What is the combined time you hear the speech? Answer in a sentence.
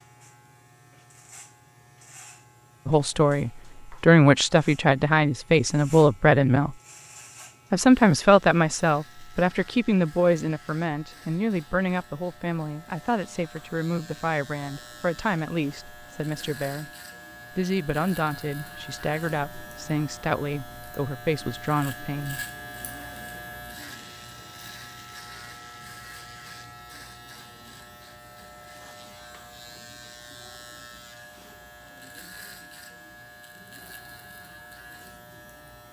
The speech can be heard for 18 seconds in total.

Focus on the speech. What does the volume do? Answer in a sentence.
The loudness of the speech goes down.